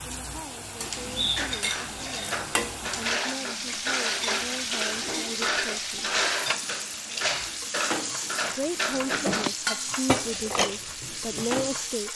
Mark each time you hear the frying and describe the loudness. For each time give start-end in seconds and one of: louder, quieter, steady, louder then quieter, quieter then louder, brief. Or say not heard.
0.0-12.1 steady.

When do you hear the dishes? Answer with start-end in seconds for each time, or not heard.
0.8-11.7.